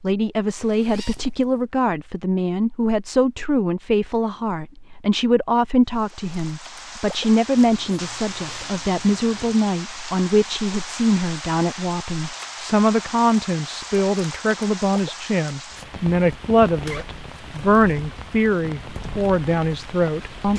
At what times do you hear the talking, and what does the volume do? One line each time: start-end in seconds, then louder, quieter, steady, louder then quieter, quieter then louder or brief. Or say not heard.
0.0-20.5 steady.